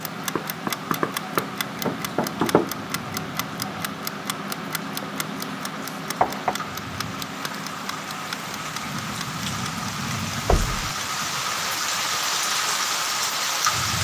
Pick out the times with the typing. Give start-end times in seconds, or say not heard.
not heard.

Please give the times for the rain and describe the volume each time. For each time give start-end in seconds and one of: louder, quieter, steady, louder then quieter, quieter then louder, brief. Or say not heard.
0.0-13.9 louder.